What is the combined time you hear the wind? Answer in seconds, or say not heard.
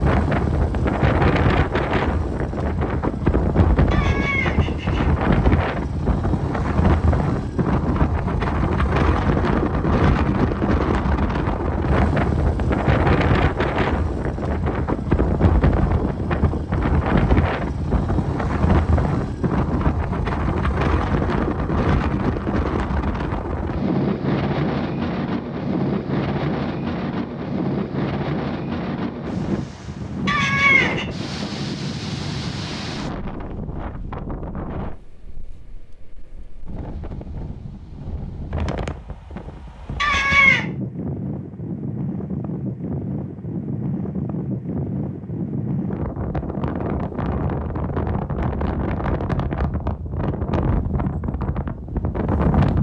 53 s.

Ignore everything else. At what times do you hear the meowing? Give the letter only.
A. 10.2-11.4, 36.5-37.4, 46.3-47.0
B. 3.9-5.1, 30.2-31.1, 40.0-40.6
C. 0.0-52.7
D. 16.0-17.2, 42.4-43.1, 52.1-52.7
B.